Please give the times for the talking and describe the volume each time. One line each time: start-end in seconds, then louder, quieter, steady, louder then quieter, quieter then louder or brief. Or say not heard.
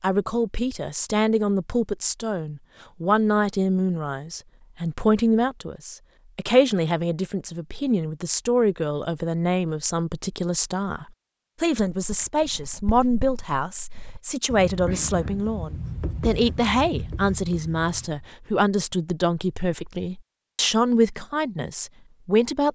0.0-22.6 steady.